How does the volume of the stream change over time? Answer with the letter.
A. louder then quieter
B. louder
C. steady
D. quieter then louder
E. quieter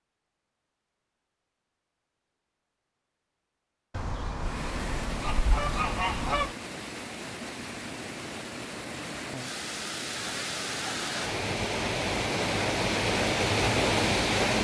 B.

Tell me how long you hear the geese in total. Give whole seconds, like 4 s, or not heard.
3 s.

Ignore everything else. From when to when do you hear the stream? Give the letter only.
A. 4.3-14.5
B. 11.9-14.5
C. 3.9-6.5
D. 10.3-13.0
A.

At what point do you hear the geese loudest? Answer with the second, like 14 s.
6 s.